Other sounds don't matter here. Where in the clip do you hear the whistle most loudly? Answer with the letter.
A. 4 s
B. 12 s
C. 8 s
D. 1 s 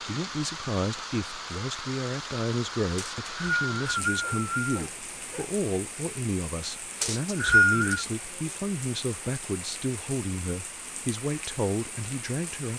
C.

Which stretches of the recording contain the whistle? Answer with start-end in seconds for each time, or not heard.
3.0-4.8, 7.0-8.1.